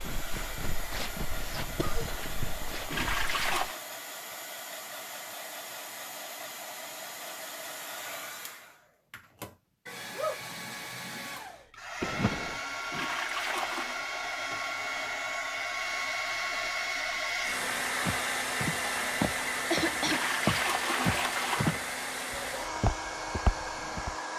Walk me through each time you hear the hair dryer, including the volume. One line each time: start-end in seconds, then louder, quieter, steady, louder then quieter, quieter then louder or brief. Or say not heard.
0.0-24.3 louder.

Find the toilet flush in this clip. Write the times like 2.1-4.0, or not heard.
2.9-3.8, 12.9-14.0, 20.0-21.7.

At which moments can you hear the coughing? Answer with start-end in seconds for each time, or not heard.
1.6-2.3, 12.0-12.6, 19.6-20.2.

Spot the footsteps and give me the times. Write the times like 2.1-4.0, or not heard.
0.0-3.7, 18.1-24.1.